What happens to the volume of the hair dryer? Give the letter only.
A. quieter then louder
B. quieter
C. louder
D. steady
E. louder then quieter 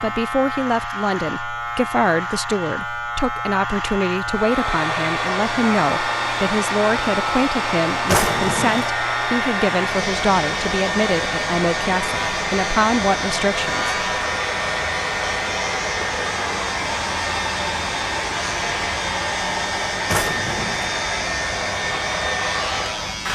D.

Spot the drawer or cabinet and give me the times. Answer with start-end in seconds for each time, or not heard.
8.1-8.9, 20.1-20.9.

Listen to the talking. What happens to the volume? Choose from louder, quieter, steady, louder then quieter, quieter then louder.
steady.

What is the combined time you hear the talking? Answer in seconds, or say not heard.
14 s.